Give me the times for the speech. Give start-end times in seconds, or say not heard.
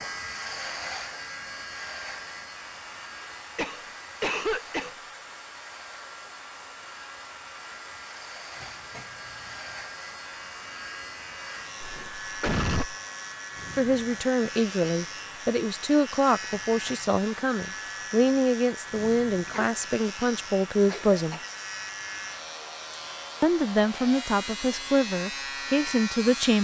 13.8-21.4, 23.4-26.5.